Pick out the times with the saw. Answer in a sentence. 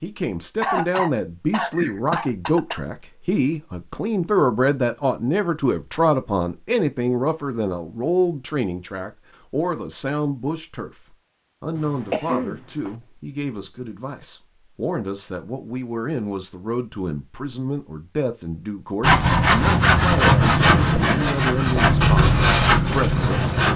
The saw can be heard from 19.0 to 23.7 s.